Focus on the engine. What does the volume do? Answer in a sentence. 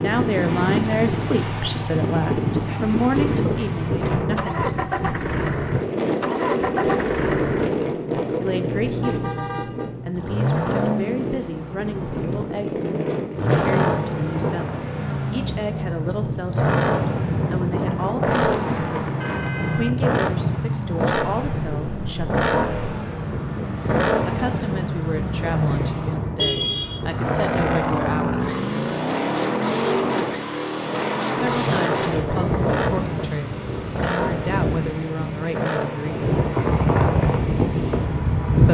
The volume of the engine stays about the same.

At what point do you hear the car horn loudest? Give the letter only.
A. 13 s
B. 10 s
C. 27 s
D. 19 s
C.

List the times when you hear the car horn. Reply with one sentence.
The car horn can be heard from 9.0 to 9.9 s, from 18.5 to 19.9 s and from 26.4 to 27.0 s.